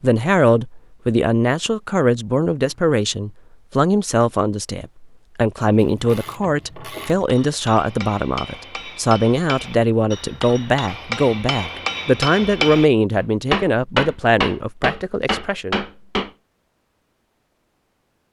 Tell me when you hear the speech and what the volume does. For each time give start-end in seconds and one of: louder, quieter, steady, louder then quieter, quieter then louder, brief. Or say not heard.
0.0-15.8 steady.